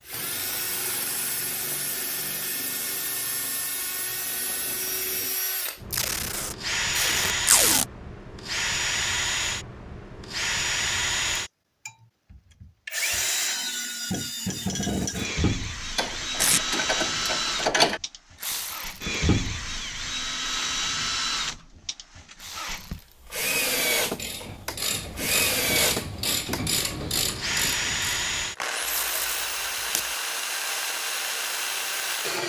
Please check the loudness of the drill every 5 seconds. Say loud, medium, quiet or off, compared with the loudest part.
medium, loud, loud, loud, loud, loud, loud.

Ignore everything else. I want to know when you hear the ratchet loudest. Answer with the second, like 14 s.
18 s.